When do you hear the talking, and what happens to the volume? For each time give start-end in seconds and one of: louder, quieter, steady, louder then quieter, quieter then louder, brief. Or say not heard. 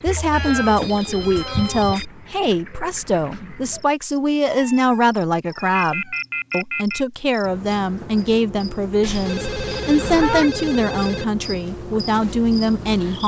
0.0-13.2 steady.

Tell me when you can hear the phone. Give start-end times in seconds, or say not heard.
0.1-2.0, 5.8-7.0, 9.2-11.2.